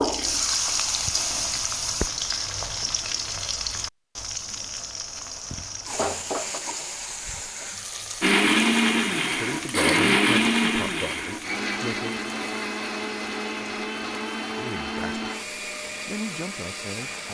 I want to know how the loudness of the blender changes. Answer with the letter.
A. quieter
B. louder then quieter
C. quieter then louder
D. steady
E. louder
A.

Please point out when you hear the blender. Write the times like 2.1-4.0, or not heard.
8.2-17.2.